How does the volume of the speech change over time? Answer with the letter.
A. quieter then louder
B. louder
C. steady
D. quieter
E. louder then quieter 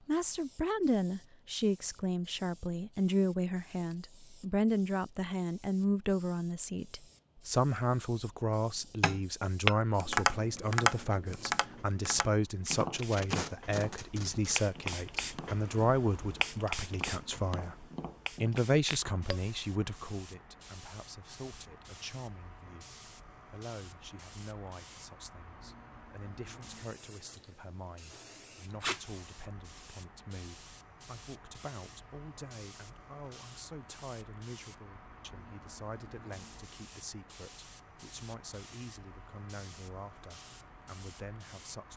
D.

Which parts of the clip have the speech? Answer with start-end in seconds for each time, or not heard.
0.1-41.9.